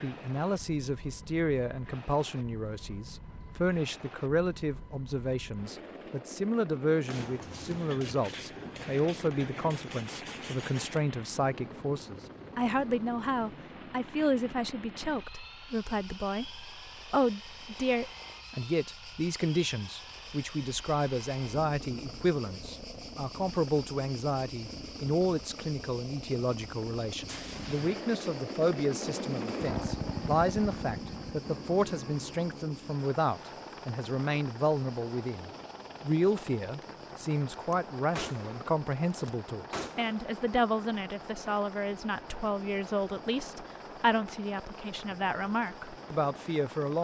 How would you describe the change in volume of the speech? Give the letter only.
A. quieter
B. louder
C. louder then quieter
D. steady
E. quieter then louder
D.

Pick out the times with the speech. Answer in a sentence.
The speech can be heard from 0.0 to 46.9 s.